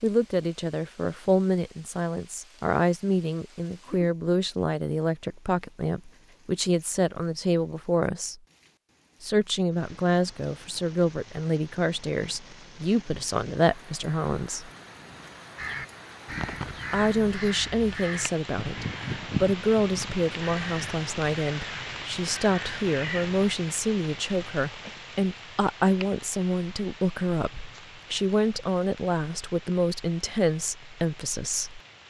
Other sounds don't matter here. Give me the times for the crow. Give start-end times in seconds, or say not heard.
15.6-23.5.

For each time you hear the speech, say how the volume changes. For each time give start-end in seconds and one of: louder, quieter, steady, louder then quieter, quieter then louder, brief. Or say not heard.
0.0-8.4 steady
9.2-14.7 steady
16.9-31.8 steady.